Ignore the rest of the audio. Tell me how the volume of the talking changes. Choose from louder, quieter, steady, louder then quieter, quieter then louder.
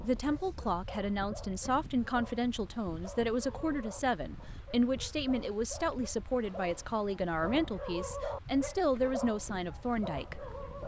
steady.